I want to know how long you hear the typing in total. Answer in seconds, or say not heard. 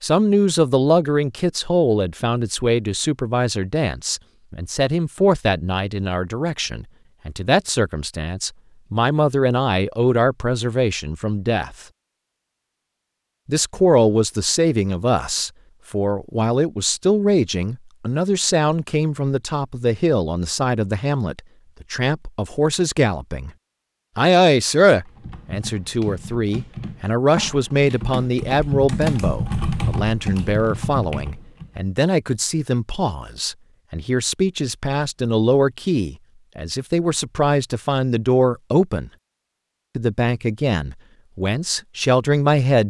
7 s.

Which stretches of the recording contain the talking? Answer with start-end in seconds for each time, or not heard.
0.0-11.8, 13.4-23.5, 24.1-39.1, 40.0-42.8.